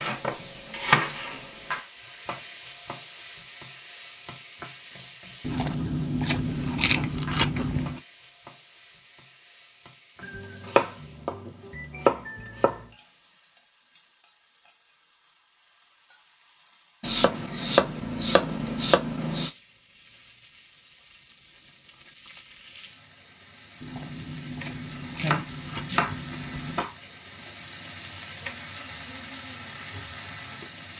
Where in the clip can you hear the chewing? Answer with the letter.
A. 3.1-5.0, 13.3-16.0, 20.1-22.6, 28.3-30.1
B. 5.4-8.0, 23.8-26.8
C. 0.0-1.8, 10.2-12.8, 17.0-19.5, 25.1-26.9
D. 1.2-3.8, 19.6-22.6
B.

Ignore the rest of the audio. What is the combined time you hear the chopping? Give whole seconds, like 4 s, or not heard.
9 s.